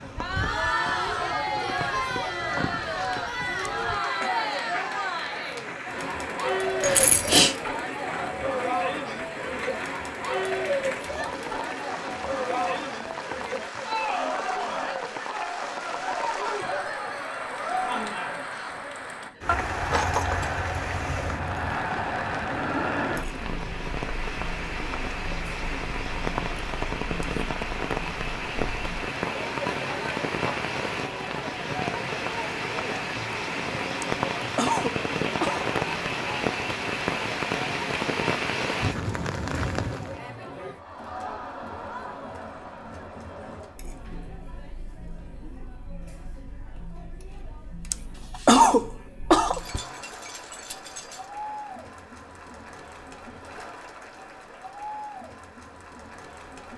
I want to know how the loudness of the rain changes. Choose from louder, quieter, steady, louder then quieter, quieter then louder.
louder.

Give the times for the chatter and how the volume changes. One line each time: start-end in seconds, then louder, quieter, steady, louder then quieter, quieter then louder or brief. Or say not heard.
0.0-56.7 quieter.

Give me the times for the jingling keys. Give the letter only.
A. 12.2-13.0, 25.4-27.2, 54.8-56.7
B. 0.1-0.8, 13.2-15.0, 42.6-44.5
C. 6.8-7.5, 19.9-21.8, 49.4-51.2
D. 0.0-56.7
C.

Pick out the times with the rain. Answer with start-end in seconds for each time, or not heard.
0.0-40.2.